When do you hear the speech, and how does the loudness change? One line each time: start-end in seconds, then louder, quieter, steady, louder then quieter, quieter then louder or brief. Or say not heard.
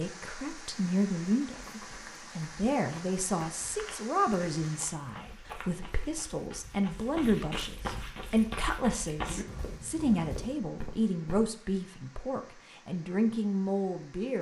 0.0-14.3 steady.